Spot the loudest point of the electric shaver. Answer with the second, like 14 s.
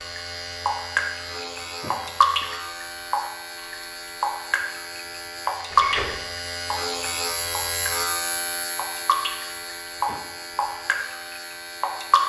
8 s.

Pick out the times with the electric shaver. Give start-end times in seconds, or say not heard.
0.0-12.2.